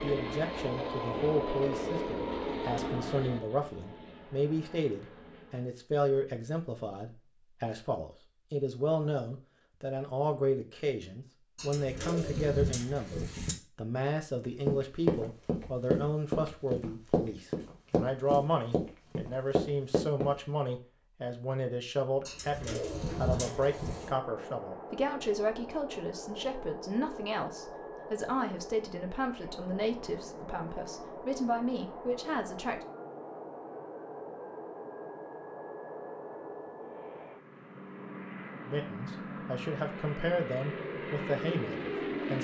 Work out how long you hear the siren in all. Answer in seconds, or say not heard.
not heard.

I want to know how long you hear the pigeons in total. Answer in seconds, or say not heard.
4 s.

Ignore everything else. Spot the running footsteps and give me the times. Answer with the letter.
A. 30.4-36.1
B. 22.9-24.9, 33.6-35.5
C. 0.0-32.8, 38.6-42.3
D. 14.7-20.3
D.